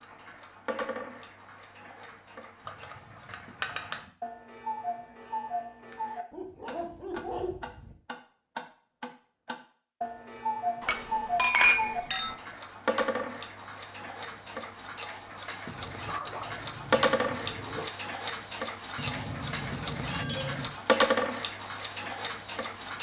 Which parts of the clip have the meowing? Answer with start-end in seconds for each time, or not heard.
not heard.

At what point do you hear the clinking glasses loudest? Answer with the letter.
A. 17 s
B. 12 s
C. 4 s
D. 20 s
B.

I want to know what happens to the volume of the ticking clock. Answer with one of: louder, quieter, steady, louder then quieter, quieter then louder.
louder.